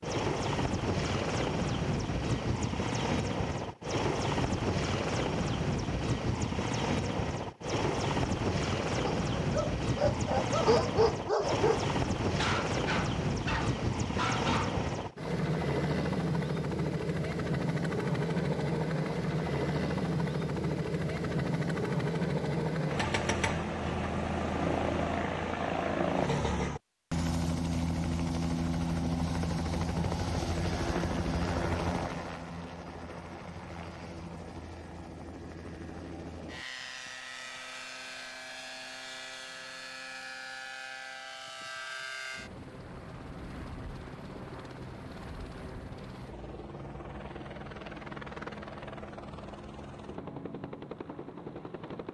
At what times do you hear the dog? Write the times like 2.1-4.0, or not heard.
9.0-14.8.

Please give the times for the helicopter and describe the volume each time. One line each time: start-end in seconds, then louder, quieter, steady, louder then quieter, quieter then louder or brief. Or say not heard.
0.0-52.0 quieter.